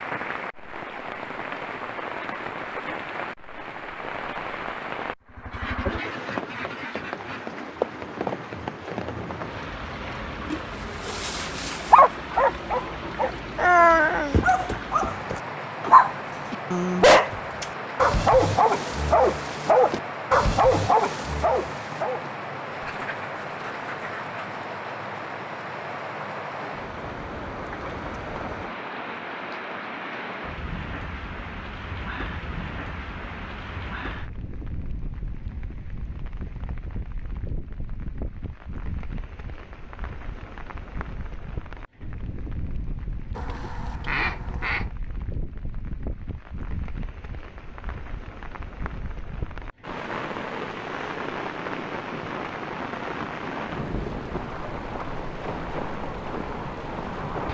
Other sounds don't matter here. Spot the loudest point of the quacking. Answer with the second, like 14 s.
44 s.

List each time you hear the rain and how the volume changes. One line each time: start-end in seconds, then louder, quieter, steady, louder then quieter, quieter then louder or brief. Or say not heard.
0.0-57.4 quieter then louder.